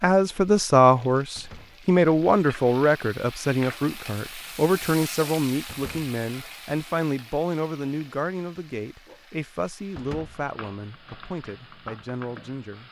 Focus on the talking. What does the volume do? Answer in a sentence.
The volume of the talking goes down.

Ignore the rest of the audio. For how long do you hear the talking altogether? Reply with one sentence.
You can hear the talking for 13 seconds altogether.